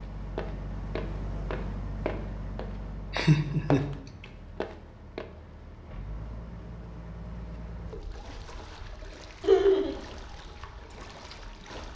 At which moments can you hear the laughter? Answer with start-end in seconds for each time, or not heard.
3.1-3.9, 9.4-9.9.